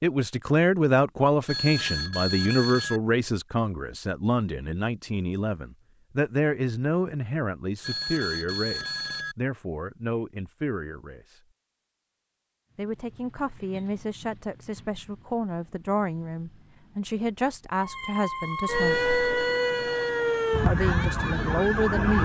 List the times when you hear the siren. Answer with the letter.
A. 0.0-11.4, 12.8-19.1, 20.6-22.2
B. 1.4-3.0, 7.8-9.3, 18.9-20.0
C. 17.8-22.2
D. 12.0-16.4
C.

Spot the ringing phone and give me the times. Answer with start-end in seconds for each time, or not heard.
1.4-3.0, 7.8-9.3, 18.9-20.0.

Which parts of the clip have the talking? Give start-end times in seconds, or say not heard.
0.0-11.4, 12.8-19.1, 20.6-22.2.